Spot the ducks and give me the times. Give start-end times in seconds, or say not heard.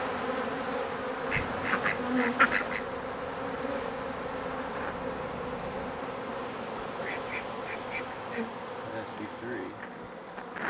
1.3-2.8, 7.0-8.4.